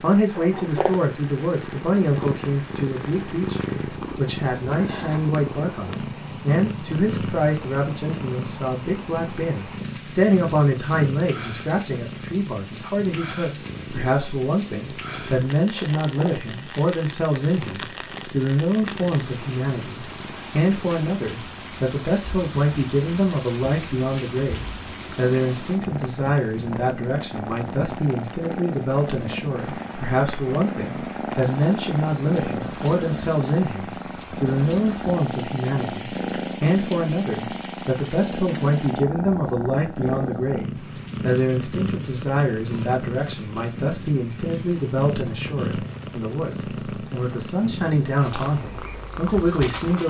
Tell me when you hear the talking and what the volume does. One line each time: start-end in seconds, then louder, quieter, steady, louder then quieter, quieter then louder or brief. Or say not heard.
0.0-50.0 steady.